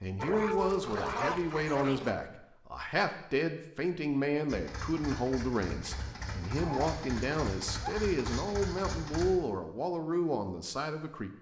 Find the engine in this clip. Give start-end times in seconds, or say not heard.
4.5-9.3.